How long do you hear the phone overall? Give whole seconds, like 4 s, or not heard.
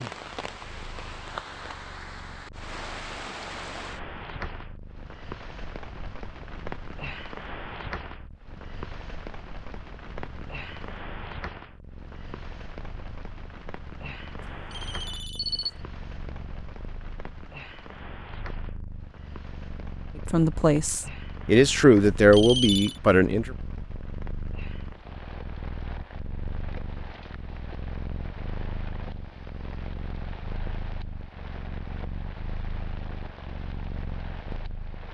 2 s.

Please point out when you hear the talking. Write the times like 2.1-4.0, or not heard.
20.3-23.5.